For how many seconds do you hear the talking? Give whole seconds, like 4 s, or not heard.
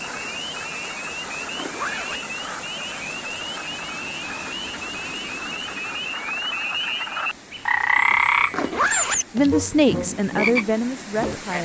2 s.